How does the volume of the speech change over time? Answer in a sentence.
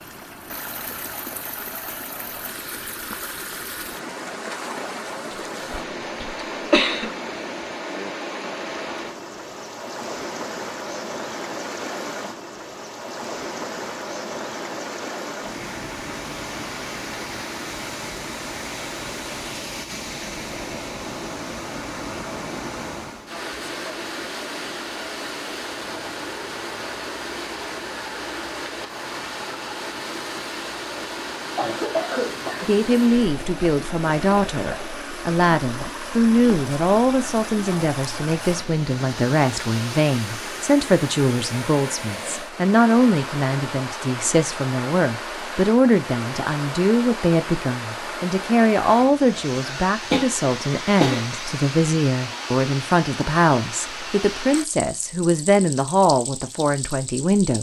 The loudness of the speech stays about the same.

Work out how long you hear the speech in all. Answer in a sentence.
The speech can be heard for 25 seconds in total.